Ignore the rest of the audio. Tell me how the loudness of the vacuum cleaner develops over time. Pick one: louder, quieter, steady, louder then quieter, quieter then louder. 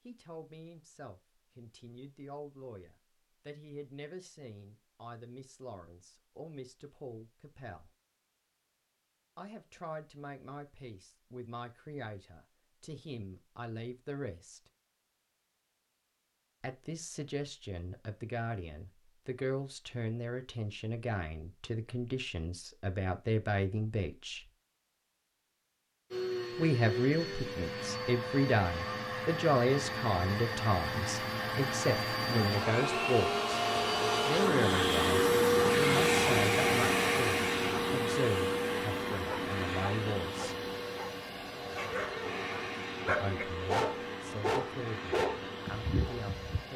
louder then quieter.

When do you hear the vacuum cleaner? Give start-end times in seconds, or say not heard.
26.1-46.7.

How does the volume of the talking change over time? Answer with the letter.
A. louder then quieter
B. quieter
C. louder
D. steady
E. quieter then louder
A.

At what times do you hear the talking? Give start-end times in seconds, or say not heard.
0.1-8.0, 9.3-14.6, 16.6-24.5, 26.6-33.4, 34.2-40.5, 43.0-46.7.